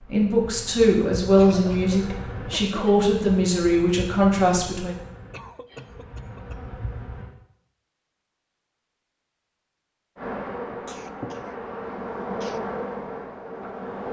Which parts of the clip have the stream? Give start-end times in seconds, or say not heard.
not heard.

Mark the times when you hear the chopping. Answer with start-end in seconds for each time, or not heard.
not heard.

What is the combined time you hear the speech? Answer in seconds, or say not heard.
5 s.